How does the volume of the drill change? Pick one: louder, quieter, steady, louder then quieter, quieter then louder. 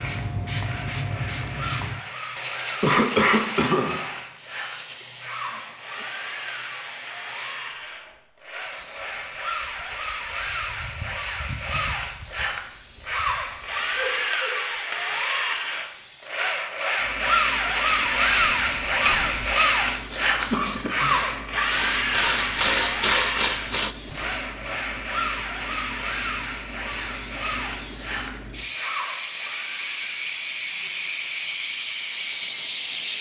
louder then quieter.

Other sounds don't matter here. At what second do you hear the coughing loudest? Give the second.
3 s.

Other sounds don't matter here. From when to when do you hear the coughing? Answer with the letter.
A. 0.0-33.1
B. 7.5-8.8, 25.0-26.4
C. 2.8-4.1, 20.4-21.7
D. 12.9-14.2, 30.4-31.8
C.